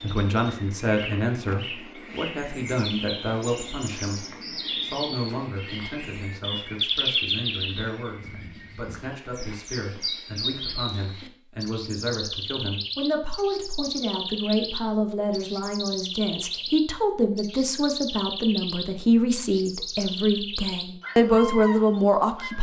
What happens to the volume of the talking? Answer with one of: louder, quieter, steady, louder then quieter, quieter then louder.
quieter then louder.